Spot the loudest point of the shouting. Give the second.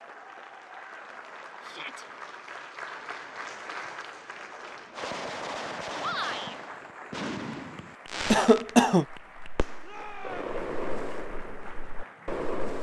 6 s.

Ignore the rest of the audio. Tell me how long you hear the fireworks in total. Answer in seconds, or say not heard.
8 s.